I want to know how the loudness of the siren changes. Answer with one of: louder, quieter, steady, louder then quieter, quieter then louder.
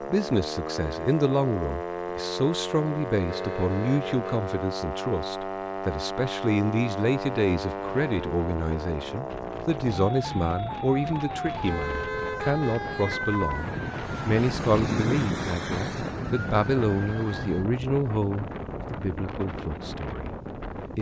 steady.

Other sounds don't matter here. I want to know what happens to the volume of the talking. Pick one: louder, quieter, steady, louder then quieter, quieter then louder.
steady.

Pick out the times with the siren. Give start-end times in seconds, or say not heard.
0.0-17.6.